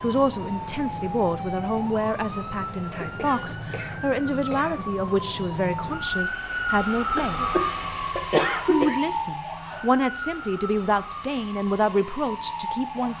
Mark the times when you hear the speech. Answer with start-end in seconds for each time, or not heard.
0.0-7.5, 8.7-13.1.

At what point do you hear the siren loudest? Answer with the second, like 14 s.
7 s.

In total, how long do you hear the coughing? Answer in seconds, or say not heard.
4 s.